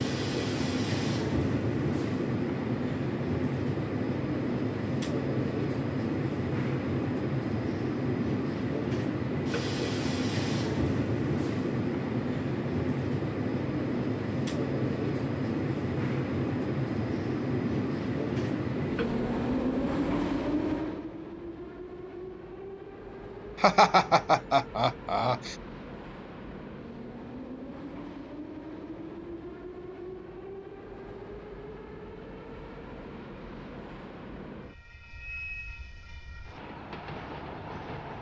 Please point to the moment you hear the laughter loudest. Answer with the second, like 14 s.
24 s.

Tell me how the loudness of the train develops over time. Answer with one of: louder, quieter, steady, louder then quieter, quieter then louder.
quieter.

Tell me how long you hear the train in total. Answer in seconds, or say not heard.
38 s.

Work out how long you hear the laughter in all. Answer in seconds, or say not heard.
2 s.